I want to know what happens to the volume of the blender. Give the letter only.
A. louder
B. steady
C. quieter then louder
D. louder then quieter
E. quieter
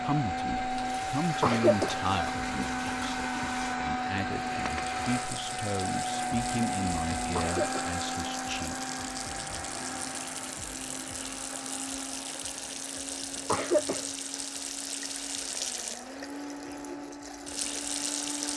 E.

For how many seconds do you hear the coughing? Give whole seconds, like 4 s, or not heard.
2 s.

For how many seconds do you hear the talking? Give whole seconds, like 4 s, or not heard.
9 s.